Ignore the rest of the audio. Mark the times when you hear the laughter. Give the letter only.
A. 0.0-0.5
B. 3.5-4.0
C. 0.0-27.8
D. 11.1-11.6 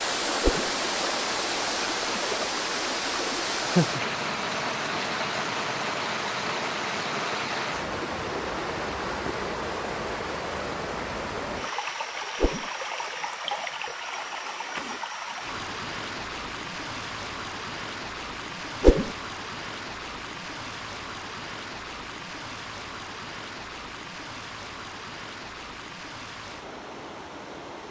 B.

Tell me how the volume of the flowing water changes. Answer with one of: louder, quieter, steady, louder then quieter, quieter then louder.
quieter.